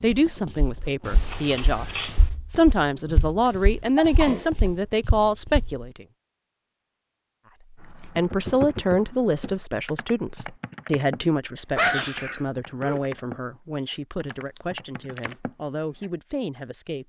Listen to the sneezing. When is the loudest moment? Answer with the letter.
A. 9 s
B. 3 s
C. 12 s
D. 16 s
C.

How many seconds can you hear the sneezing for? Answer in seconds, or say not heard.
3 s.